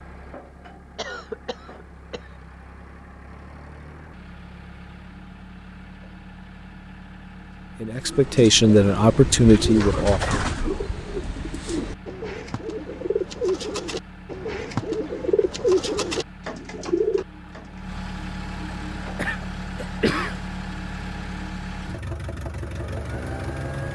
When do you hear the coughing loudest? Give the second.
20 s.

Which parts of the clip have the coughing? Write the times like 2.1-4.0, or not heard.
0.9-2.3, 9.8-10.9, 19.1-20.4.